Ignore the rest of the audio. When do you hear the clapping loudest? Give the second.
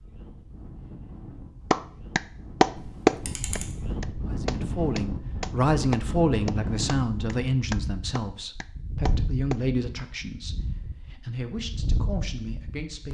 3 s.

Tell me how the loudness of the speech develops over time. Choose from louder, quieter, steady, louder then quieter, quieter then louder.
quieter.